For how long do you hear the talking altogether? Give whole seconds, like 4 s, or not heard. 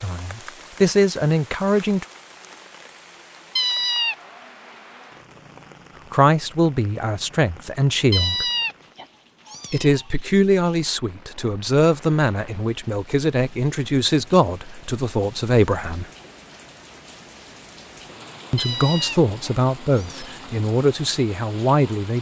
14 s.